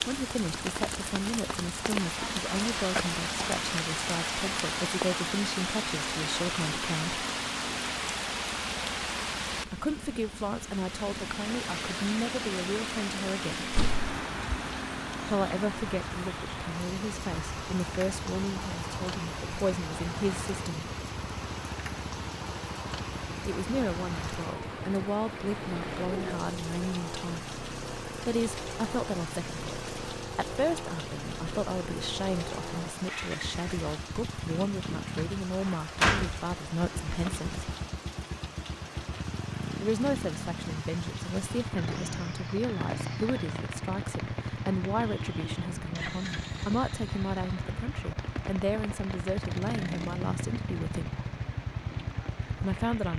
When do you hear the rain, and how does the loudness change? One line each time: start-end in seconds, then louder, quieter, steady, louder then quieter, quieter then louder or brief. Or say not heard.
0.0-53.1 quieter.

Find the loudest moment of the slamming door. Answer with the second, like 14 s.
36 s.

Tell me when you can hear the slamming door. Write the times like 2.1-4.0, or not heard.
13.7-14.1, 35.1-36.4.